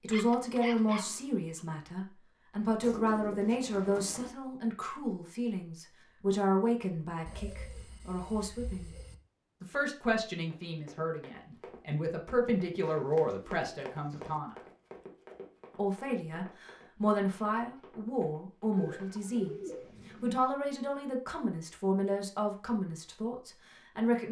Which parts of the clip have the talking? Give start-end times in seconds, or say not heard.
0.0-8.9, 9.6-14.6, 15.8-24.2.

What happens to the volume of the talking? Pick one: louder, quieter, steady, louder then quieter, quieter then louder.
steady.